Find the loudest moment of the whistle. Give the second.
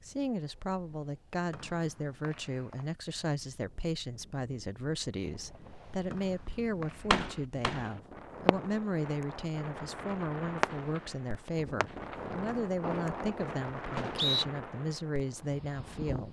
14 s.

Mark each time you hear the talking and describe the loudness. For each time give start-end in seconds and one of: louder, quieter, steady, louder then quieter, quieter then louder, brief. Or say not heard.
0.0-16.2 steady.